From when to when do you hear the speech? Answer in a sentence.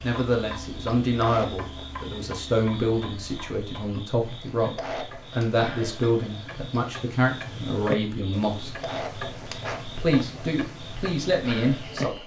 You can hear the speech from 0.0 to 8.8 s and from 9.8 to 12.2 s.